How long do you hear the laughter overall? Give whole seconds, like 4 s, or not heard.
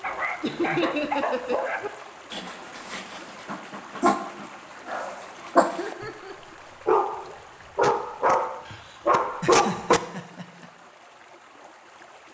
4 s.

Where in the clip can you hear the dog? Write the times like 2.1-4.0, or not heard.
0.0-6.1, 6.8-10.0.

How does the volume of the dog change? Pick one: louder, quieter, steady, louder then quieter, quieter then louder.
quieter then louder.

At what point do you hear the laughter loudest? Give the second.
1 s.